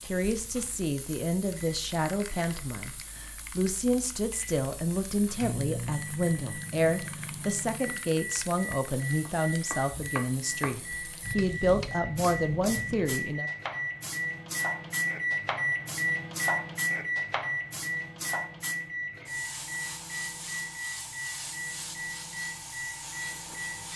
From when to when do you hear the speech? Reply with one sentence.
The speech can be heard from 0.0 to 13.5 s.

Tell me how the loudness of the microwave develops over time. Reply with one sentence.
The volume of the microwave goes up, then down.